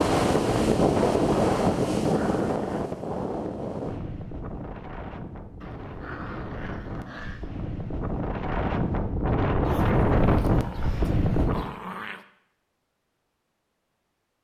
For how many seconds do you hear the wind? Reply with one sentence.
You can hear the wind for 12 seconds altogether.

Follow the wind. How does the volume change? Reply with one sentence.
The loudness of the wind goes down, then up.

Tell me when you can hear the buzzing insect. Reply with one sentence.
You can't hear the buzzing insect here.